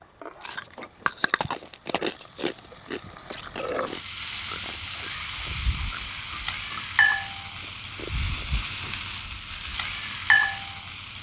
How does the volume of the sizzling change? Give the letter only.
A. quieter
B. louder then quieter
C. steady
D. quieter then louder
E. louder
E.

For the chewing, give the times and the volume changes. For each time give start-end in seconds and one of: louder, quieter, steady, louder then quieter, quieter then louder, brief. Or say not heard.
0.4-8.9 quieter.